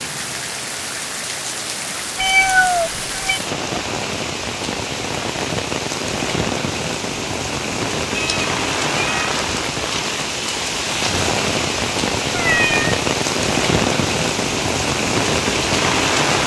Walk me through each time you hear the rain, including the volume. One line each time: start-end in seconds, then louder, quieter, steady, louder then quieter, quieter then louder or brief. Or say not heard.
0.0-16.4 louder.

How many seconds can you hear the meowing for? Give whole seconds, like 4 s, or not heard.
3 s.